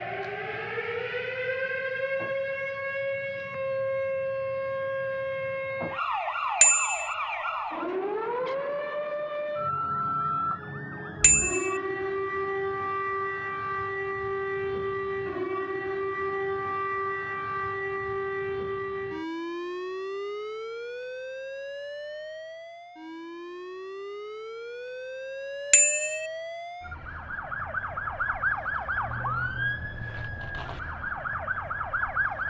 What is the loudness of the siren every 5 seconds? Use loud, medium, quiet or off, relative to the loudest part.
loud, loud, loud, loud, medium, loud, loud.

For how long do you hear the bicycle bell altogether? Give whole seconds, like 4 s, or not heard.
2 s.